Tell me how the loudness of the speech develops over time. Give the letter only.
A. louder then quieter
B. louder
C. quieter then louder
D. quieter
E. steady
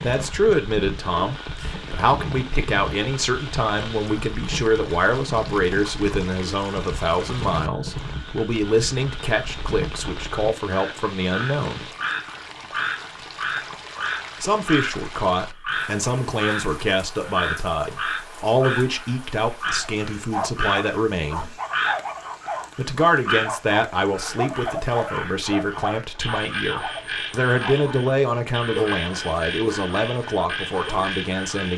E.